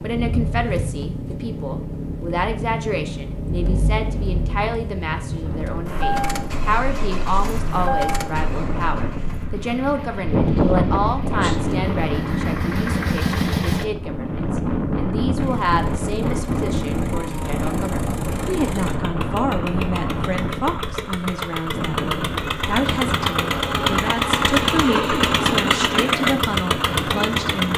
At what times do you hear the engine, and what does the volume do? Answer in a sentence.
You can hear the engine from 0.0 to 13.8 s, getting quieter then louder; and from 15.3 to 27.7 s, getting louder.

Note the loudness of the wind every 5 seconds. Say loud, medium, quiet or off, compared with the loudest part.
off, medium, loud, loud, medium, medium.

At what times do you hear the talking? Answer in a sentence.
The talking can be heard from 0.0 to 27.7 s.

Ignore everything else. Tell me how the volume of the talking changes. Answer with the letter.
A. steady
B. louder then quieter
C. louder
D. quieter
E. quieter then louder
A.